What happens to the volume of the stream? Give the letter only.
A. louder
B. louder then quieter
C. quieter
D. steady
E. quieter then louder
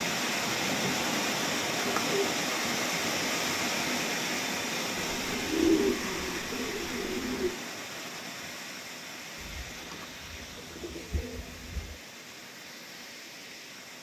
C.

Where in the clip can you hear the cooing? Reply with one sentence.
The cooing can be heard from 0.6 to 3.0 s, from 5.0 to 7.5 s and from 9.3 to 12.0 s.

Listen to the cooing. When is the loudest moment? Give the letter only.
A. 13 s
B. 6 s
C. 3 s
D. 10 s
B.